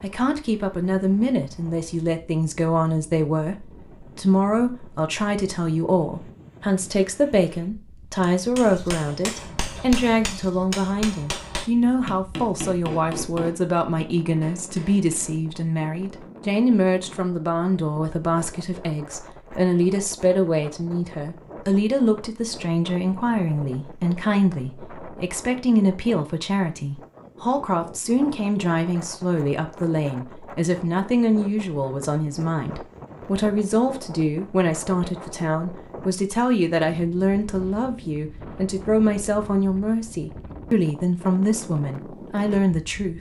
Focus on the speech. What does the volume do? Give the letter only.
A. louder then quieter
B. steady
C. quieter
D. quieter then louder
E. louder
B.